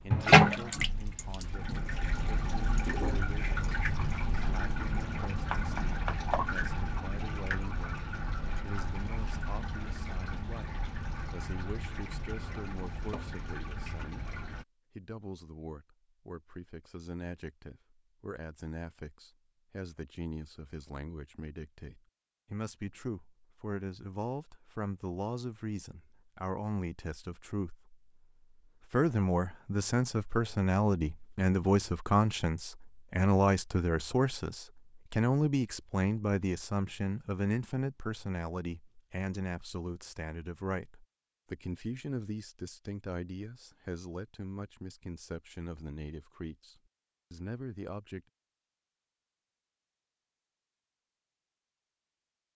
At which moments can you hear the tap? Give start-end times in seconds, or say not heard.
0.1-14.7.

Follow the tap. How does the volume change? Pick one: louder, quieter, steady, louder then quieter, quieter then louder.
quieter.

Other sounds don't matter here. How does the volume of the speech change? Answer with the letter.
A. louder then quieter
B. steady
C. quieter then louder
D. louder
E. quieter
A.